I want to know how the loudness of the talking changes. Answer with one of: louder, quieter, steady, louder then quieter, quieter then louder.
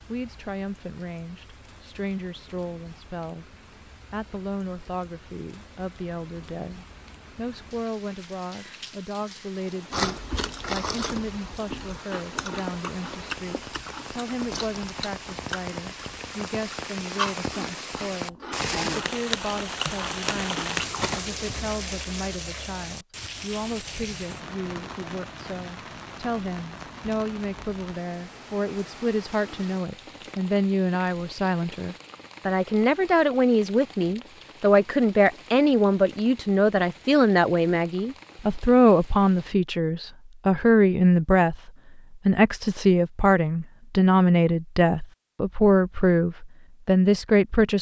louder.